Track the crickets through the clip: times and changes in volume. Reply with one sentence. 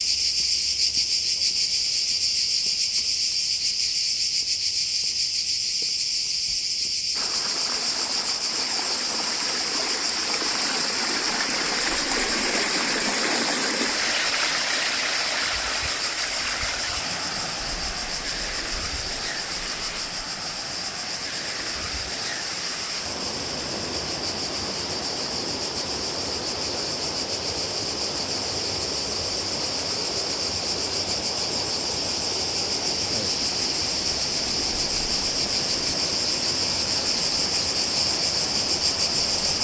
The crickets can be heard from 0.0 to 39.5 s, getting quieter then louder.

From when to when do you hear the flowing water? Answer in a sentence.
The flowing water can be heard from 7.1 to 39.5 s.